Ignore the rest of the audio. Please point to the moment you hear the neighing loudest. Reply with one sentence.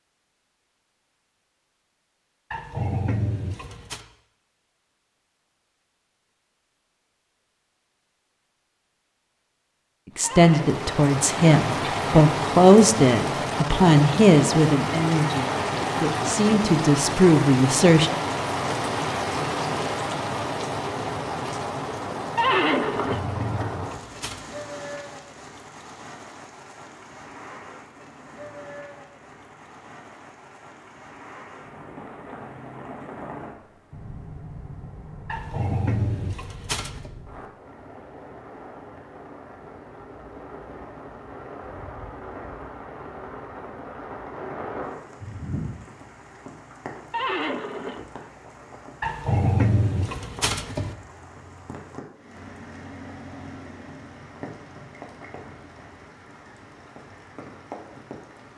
The volume of the neighing peaks at 23 seconds.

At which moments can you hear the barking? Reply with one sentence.
You can hear the barking from 2.5 to 4.0 s, from 23.1 to 24.4 s, from 35.2 to 37.1 s and from 49.0 to 51.0 s.